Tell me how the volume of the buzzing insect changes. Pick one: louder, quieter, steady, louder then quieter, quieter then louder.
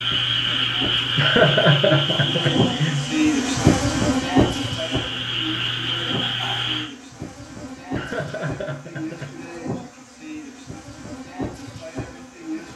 louder then quieter.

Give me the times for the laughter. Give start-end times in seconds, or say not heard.
1.1-3.1, 7.9-9.6.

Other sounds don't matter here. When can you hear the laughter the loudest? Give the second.
2 s.